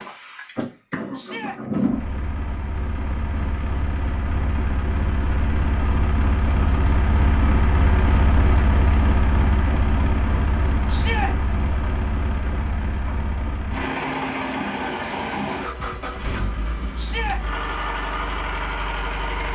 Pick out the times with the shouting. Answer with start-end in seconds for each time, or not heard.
1.1-1.6, 10.8-11.3, 16.9-17.4.